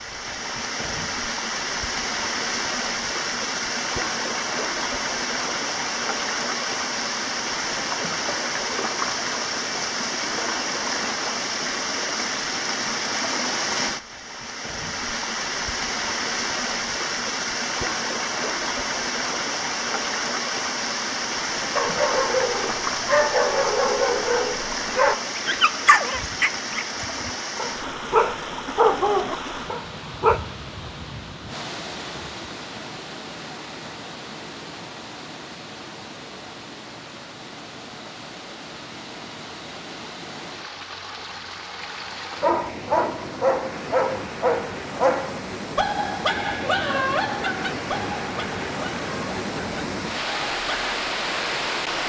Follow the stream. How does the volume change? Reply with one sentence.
The loudness of the stream goes down, then up.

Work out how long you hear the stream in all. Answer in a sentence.
The stream can be heard for 52 seconds in total.